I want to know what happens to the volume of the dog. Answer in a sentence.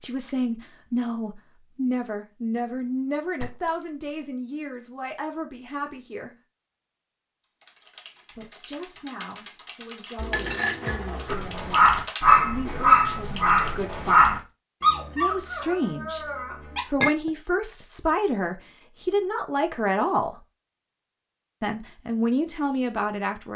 The volume of the dog goes down.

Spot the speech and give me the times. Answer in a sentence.
You can hear the speech from 0.0 to 6.3 s, from 8.3 to 14.4 s, from 15.1 to 20.4 s and from 21.6 to 23.5 s.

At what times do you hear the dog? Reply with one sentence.
You can hear the dog from 11.2 to 16.8 s.